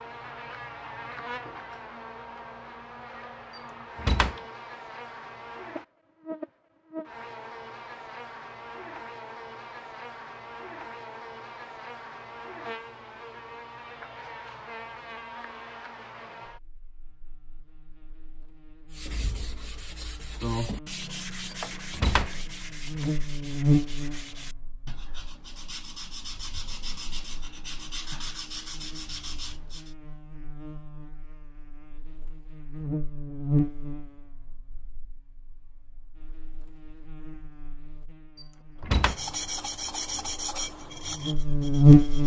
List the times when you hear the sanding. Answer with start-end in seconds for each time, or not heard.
18.9-29.9, 39.0-42.2.